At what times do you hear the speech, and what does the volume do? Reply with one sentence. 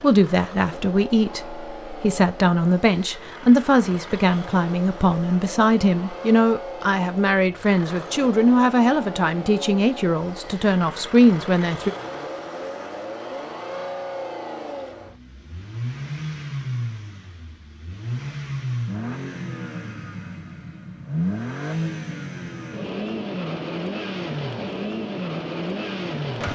You can hear the speech from 0.0 to 11.9 s, at a steady volume.